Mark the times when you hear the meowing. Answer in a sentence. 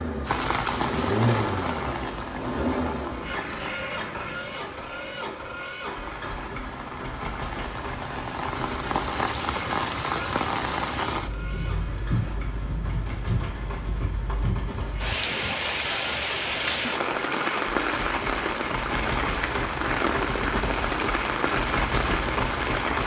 You can hear the meowing from 3.1 to 4.5 s.